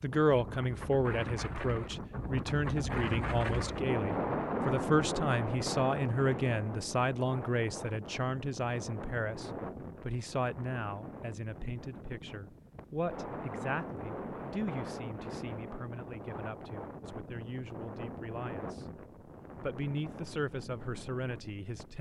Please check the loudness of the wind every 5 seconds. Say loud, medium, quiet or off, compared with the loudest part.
loud, loud, medium, medium, quiet.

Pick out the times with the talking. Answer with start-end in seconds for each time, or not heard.
0.0-21.9.